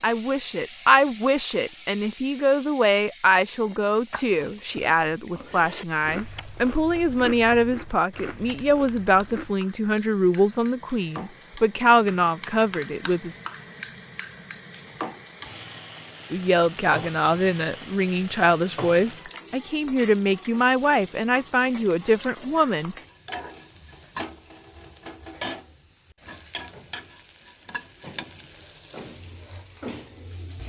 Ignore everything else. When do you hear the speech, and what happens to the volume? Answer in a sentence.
You can hear the speech from 0.0 to 13.3 s, at a steady volume; and from 16.3 to 22.9 s, at a steady volume.